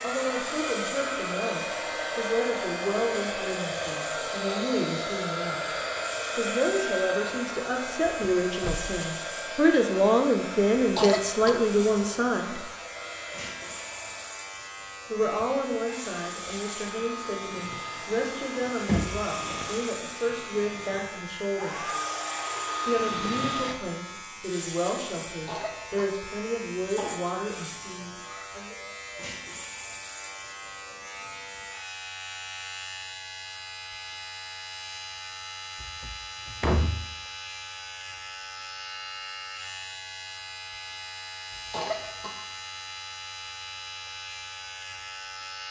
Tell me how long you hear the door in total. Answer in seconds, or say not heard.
3 s.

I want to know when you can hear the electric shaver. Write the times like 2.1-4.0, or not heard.
0.0-45.6.